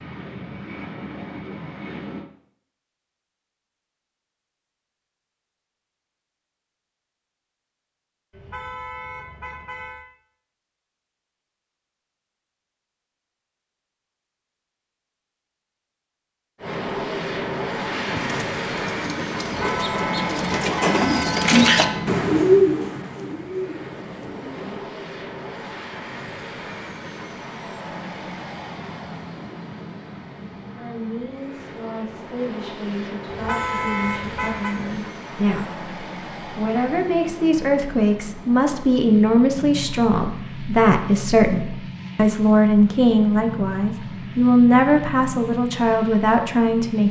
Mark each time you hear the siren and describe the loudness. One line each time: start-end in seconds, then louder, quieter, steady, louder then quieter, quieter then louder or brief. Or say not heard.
not heard.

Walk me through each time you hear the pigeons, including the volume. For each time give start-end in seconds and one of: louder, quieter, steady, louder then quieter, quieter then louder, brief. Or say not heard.
17.9-24.8 louder then quieter.